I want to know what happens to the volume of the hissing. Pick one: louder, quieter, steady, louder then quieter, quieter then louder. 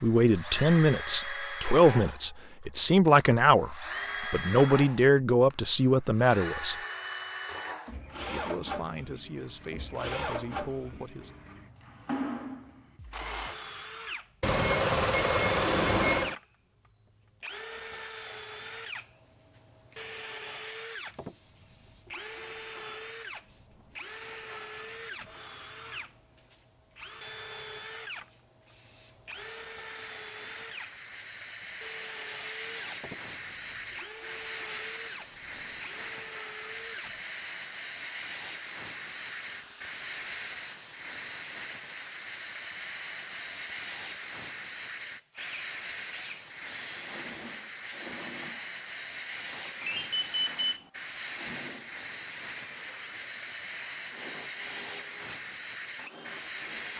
louder.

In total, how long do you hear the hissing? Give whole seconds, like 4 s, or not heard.
39 s.